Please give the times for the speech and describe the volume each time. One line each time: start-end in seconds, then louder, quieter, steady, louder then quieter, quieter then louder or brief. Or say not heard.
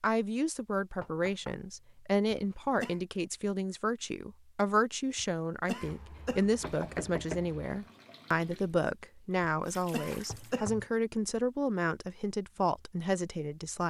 0.0-13.8 steady.